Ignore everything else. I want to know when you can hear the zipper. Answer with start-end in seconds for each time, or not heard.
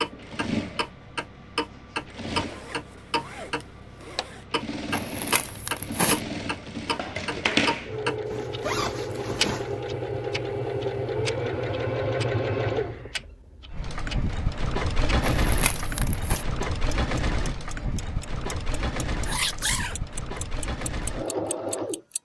2.4-4.5, 7.9-9.8, 19.2-19.9.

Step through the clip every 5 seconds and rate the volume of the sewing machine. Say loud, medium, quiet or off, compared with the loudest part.
medium, loud, loud, loud, loud.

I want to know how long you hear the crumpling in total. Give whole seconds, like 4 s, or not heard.
2 s.